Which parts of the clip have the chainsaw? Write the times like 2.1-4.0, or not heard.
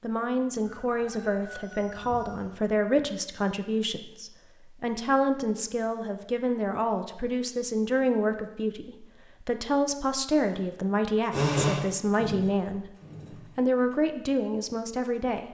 11.3-13.9.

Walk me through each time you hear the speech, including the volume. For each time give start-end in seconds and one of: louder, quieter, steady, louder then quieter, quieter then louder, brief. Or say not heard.
0.0-12.9 steady
13.6-15.4 brief.